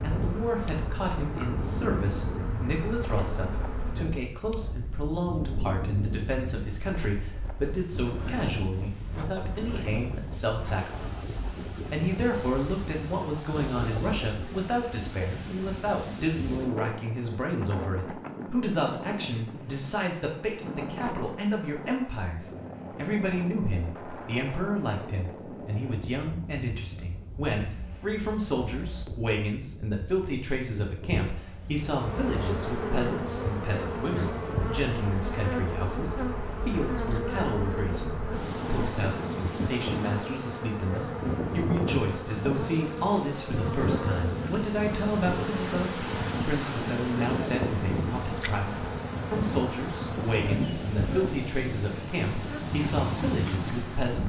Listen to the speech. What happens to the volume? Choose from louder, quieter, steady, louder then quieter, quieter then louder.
steady.